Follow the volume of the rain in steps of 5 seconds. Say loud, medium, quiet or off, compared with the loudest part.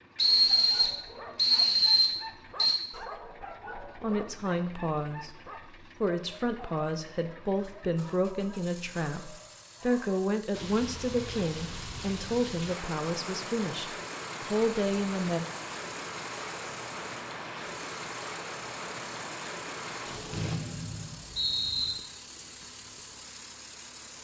off, off, loud, loud, medium.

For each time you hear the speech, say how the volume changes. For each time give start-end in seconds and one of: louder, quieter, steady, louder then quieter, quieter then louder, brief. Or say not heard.
4.0-15.4 steady.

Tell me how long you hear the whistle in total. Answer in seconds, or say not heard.
4 s.